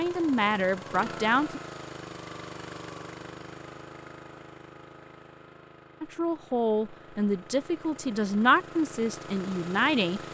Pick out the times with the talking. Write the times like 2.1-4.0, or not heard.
0.0-1.6, 6.0-10.2.